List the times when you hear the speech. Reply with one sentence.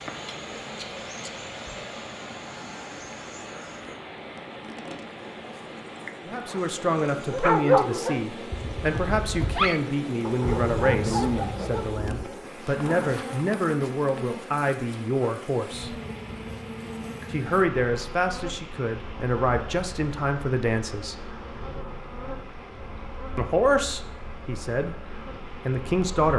The speech can be heard from 6.2 to 15.9 s, from 17.3 to 21.2 s and from 23.4 to 26.3 s.